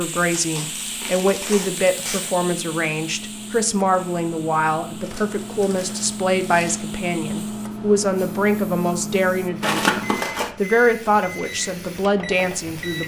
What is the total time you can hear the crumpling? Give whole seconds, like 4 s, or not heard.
5 s.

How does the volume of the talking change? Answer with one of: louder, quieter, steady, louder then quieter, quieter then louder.
steady.